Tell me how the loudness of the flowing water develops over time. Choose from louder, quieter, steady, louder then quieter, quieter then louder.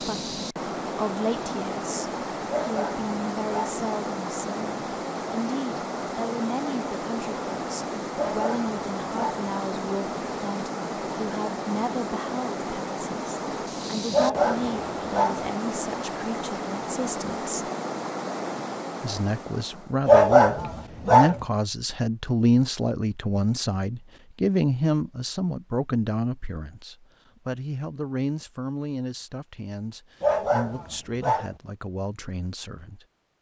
steady.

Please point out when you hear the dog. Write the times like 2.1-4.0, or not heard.
2.5-3.8, 8.2-9.4, 14.1-15.5, 20.1-21.4, 30.2-31.6.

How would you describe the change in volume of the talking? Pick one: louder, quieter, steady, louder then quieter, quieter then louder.
louder then quieter.